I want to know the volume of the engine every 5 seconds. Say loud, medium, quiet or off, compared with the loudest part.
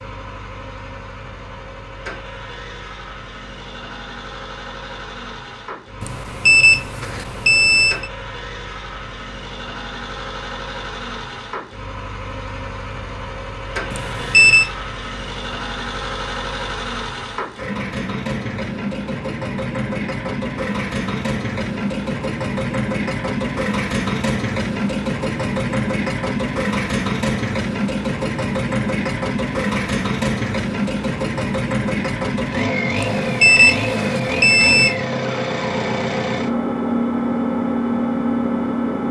quiet, quiet, medium, medium, loud, loud, loud, loud.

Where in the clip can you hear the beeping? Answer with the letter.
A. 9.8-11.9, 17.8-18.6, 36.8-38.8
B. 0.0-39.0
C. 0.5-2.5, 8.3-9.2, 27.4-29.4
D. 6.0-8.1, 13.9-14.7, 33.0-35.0
D.